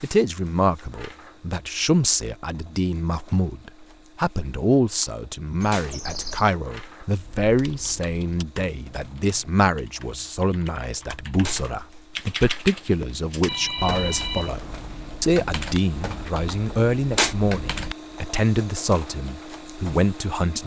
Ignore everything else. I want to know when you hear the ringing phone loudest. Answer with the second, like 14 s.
14 s.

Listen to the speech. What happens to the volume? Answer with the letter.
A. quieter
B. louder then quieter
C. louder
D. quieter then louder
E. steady
E.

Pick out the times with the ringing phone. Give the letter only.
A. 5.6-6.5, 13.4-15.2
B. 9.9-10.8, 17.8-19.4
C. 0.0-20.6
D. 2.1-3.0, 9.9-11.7
A.